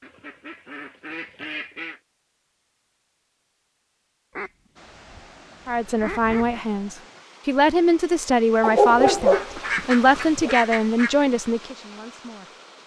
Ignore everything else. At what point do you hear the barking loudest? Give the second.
9 s.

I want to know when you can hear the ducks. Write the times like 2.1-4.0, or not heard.
0.0-2.0, 4.3-6.7, 9.1-11.2.